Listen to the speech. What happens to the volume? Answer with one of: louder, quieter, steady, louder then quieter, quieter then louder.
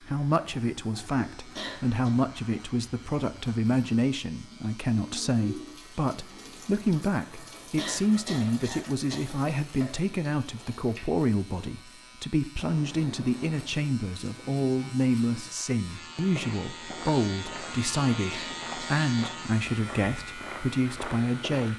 steady.